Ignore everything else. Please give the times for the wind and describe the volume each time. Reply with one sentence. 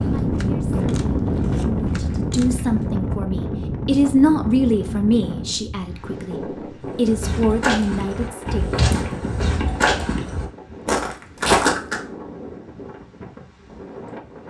The wind can be heard from 0.0 to 14.4 s, getting quieter.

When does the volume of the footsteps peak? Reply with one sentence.
The loudest moment of the footsteps is at 12 seconds.